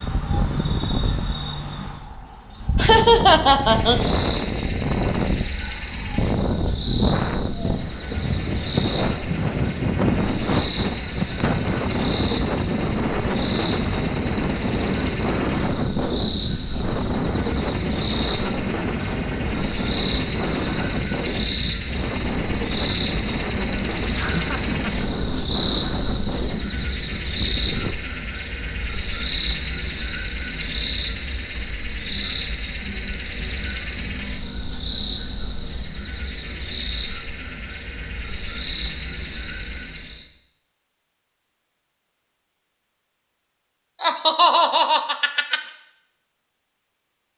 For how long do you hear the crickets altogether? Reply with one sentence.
You can hear the crickets for 40 seconds altogether.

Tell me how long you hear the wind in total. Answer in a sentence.
You can hear the wind for 28 seconds altogether.